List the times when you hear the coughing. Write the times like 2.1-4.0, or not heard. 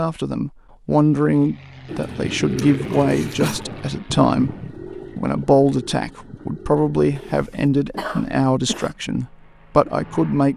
2.5-3.6, 7.2-8.9.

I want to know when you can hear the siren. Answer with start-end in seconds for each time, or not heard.
not heard.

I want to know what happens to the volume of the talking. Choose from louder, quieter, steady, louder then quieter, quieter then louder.
steady.